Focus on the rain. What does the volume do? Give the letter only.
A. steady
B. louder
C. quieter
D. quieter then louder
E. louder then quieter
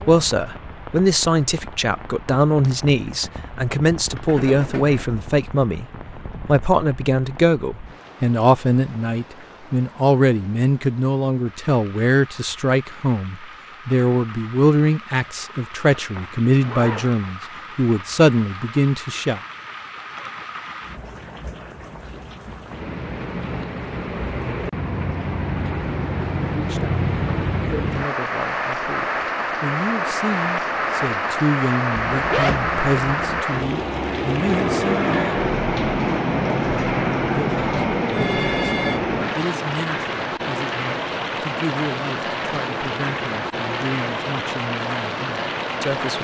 B.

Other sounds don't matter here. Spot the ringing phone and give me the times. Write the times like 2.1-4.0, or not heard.
38.1-39.0.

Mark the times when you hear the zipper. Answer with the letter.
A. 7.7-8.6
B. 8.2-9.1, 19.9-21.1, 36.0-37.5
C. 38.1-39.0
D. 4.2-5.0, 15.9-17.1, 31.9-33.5
D.